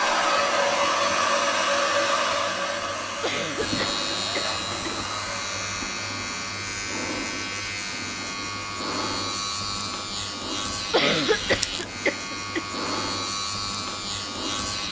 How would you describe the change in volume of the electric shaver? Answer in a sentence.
The loudness of the electric shaver goes up.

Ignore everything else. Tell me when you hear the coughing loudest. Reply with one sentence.
The loudest moment of the coughing is at 11 seconds.